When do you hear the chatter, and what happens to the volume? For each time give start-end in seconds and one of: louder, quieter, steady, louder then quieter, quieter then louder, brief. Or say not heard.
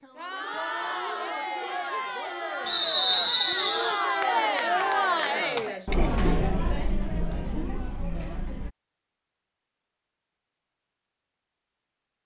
0.0-8.7 louder then quieter.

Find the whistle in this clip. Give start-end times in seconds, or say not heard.
2.6-4.0.